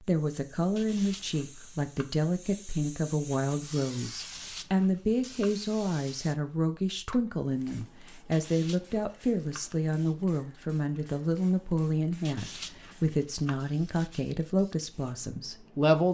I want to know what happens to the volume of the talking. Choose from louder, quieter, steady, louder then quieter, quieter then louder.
steady.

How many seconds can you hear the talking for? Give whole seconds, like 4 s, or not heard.
16 s.